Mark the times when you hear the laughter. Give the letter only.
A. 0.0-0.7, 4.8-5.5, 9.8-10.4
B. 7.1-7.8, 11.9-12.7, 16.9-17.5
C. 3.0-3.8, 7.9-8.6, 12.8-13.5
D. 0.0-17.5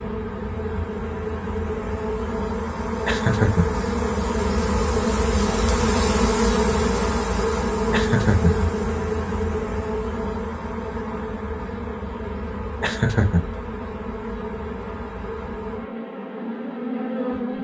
C.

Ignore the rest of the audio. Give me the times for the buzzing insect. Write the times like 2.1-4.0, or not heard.
0.0-17.5.